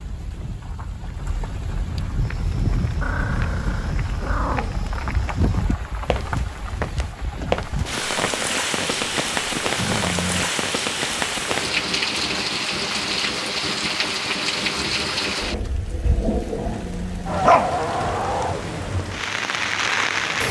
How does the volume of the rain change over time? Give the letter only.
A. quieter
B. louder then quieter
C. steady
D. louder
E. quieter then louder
D.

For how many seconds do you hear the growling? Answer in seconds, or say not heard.
4 s.